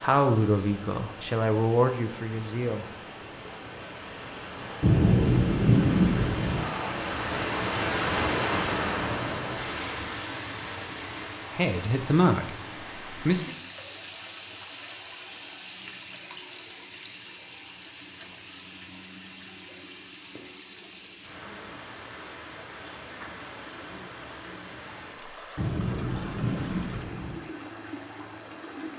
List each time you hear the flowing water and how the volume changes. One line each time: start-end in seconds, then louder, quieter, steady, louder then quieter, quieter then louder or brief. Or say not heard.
0.0-28.9 louder then quieter.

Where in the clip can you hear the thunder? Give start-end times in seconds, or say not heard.
4.8-6.6, 25.6-27.4.